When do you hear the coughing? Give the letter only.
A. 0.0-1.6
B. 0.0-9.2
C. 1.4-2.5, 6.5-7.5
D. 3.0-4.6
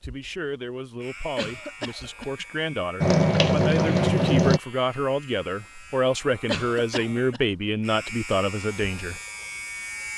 C.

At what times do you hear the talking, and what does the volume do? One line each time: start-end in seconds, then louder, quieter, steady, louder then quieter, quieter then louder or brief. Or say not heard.
0.0-9.2 louder.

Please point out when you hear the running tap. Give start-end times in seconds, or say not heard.
3.0-4.6.